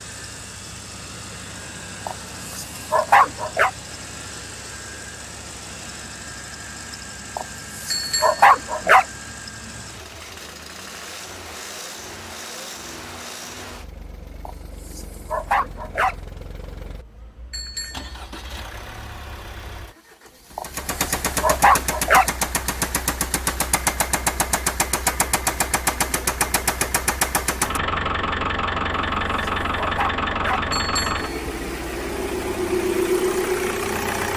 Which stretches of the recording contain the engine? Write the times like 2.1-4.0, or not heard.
0.0-34.3.